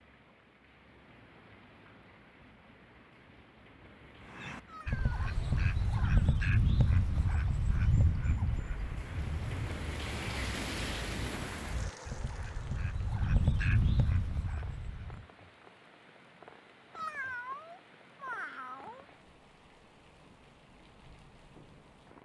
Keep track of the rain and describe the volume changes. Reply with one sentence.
The loudness of the rain goes up, then down.